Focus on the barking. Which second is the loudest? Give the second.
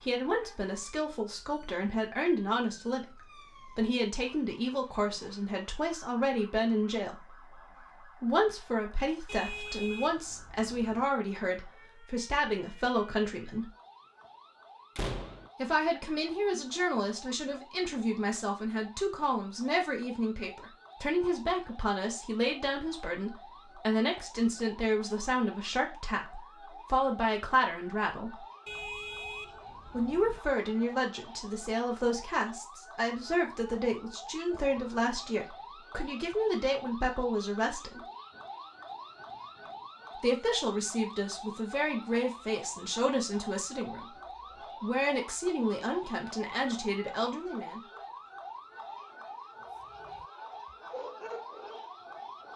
51 s.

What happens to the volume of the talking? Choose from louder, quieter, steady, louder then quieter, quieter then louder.
steady.